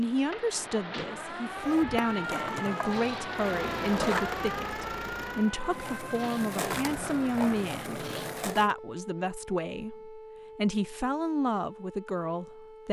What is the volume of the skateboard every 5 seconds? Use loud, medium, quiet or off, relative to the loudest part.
loud, loud, off.